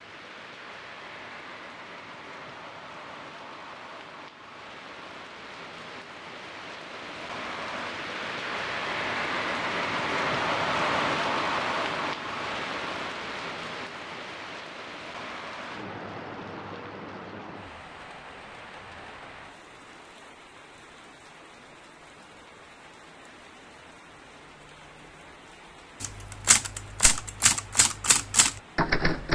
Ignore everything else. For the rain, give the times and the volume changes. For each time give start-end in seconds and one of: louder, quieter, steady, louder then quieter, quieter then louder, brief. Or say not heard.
0.0-29.3 louder then quieter.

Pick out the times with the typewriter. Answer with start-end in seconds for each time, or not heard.
26.0-29.3.